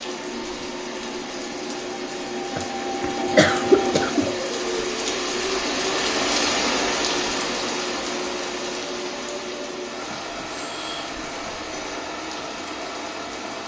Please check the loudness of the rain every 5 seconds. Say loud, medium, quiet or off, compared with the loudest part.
medium, loud, medium.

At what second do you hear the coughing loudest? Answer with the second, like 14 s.
4 s.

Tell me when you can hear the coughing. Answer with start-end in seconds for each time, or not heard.
2.5-4.3, 10.1-11.2.